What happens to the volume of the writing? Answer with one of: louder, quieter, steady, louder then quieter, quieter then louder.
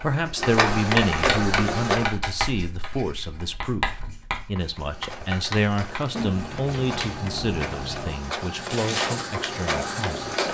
quieter.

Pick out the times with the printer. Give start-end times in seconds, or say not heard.
0.0-2.1, 4.6-10.4.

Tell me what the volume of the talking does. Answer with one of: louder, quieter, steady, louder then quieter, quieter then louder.
quieter.